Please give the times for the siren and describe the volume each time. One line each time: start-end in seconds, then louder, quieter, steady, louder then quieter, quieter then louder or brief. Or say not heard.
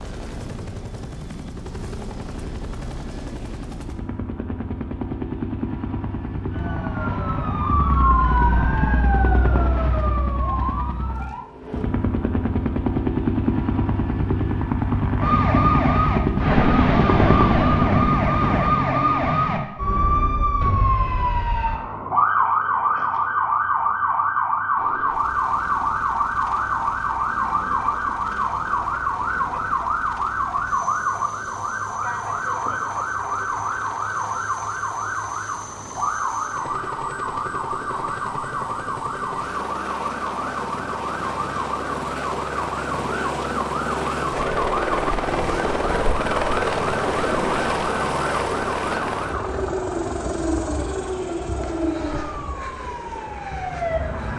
6.5-11.4 louder then quieter
15.2-54.3 quieter.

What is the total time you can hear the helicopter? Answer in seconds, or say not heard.
48 s.